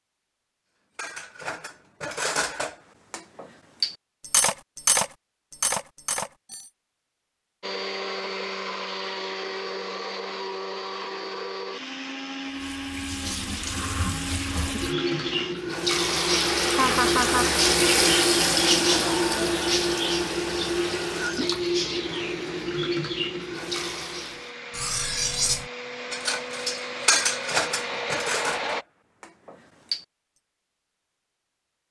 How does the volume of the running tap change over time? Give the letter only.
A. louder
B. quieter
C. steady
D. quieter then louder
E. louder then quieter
E.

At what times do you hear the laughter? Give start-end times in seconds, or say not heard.
16.7-17.5.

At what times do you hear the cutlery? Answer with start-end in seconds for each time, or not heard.
0.9-6.7, 24.7-30.0.